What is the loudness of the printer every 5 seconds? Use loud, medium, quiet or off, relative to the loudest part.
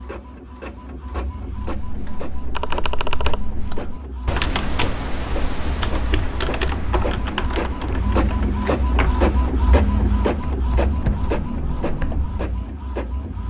medium, loud, loud.